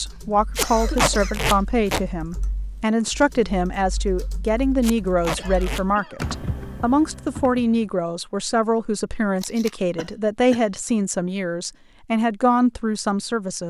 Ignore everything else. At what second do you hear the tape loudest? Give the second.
1 s.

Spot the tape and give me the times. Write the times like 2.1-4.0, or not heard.
0.6-2.0, 4.8-5.8, 9.3-9.8.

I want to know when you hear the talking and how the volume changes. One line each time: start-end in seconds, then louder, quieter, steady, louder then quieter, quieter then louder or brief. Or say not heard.
0.0-13.6 steady.